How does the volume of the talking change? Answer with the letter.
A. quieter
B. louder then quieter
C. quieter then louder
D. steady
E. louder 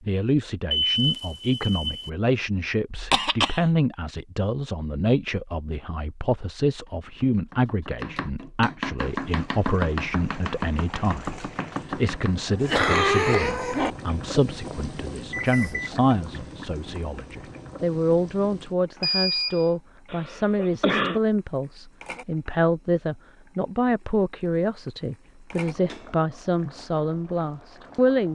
D.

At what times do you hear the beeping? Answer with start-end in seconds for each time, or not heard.
0.7-2.1, 15.3-15.9, 19.0-19.7.